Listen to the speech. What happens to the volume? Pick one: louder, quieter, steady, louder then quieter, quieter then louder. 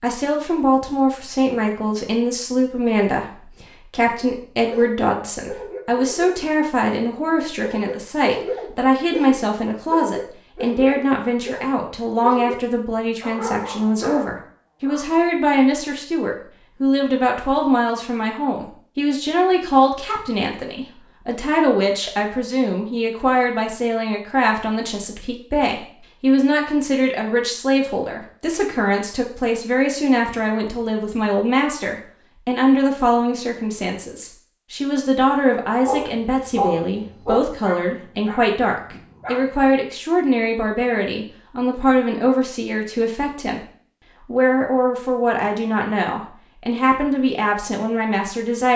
steady.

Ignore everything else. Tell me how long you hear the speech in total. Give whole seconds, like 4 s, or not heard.
48 s.